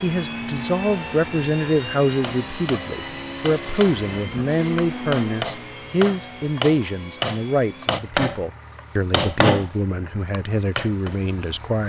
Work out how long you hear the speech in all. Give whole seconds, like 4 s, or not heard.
12 s.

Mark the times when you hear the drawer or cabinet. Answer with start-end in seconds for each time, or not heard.
not heard.